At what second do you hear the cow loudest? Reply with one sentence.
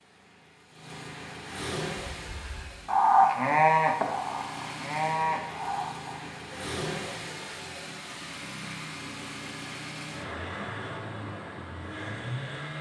The loudest moment of the cow is at 3 seconds.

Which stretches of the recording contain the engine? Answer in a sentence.
You can hear the engine from 0.0 to 12.7 s.